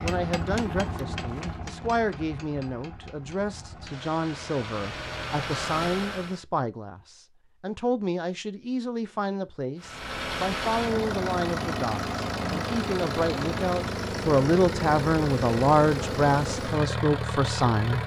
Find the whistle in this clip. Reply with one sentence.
You can't hear the whistle here.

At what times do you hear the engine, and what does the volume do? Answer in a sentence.
You can hear the engine from 0.0 to 6.4 s, getting quieter then louder; and from 9.8 to 18.0 s, at a steady volume.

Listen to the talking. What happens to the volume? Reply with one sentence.
The volume of the talking goes up.